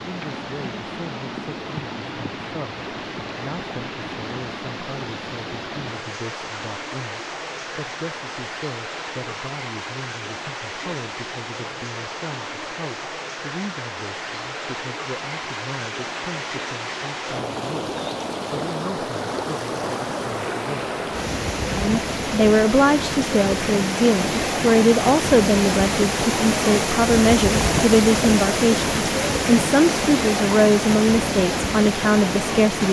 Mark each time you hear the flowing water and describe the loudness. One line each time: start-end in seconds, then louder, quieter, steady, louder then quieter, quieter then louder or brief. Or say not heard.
0.0-32.8 louder.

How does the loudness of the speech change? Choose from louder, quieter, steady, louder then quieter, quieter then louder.
louder.